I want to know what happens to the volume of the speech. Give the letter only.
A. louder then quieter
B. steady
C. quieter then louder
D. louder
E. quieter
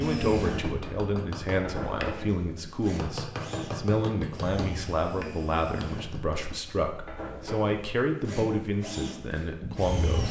B.